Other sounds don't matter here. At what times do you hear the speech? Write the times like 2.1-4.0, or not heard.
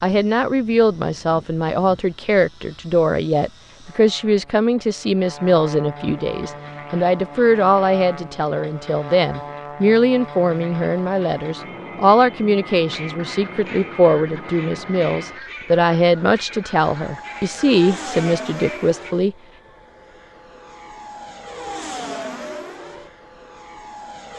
0.0-19.4.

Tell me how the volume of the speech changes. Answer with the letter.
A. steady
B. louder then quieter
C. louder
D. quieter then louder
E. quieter
A.